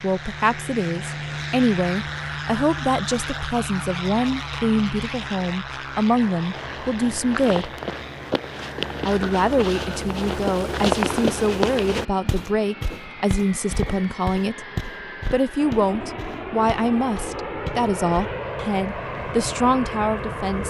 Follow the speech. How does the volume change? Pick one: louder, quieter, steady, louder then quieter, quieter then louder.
steady.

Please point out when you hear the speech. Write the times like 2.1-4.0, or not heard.
0.0-7.7, 9.1-14.7, 15.3-20.6.